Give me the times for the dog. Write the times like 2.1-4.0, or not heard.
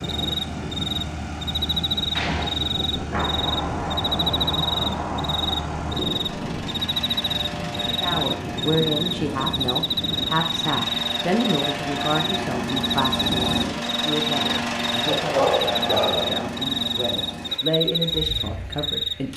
15.1-16.4.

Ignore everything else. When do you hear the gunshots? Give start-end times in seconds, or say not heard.
2.1-6.7.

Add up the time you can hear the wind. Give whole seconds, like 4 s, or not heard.
11 s.